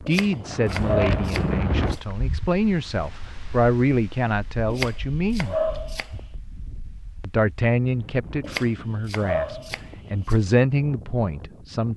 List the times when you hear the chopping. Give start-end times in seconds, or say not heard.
0.1-2.0, 4.7-6.2, 8.4-10.3.